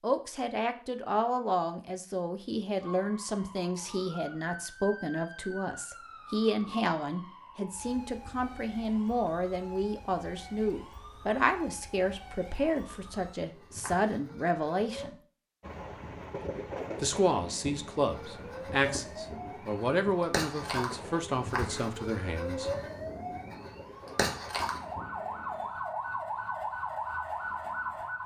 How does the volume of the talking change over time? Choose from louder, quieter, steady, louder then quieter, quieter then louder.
steady.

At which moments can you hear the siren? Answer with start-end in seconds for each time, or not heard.
2.8-15.1, 18.1-28.2.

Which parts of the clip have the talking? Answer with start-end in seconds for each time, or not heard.
0.0-15.2, 17.0-22.7.